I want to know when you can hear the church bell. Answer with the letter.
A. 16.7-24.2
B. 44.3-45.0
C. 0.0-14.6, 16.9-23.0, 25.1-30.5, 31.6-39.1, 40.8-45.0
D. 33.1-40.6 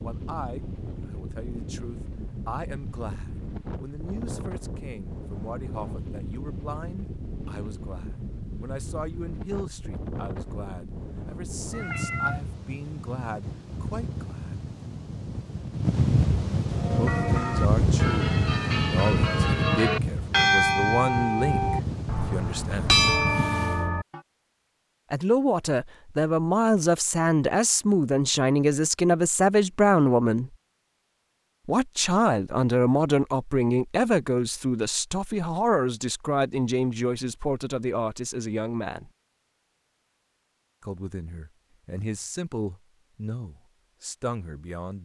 A.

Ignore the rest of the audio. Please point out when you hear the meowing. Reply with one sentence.
You can hear the meowing from 11.7 to 12.4 s.